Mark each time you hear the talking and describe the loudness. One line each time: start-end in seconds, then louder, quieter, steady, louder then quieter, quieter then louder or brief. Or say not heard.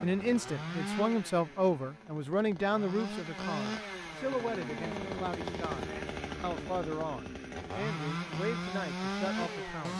0.0-9.9 quieter.